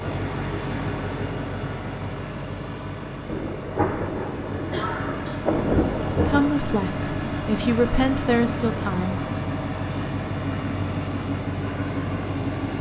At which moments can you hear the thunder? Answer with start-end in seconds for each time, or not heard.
3.2-6.5.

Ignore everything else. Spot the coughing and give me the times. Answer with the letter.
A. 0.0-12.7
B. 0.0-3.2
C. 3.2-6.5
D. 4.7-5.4
D.